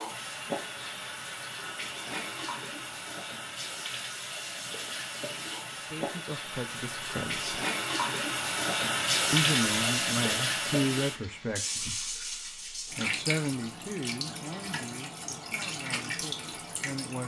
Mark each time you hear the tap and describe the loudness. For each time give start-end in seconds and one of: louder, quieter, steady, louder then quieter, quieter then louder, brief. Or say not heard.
0.0-17.2 louder then quieter.